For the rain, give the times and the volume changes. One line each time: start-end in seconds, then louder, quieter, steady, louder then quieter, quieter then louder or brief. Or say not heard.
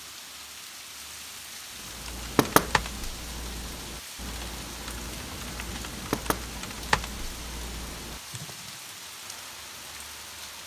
0.0-10.6 steady.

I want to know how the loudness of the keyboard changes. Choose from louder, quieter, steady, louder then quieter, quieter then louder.
louder then quieter.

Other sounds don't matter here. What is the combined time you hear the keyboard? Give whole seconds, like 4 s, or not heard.
7 s.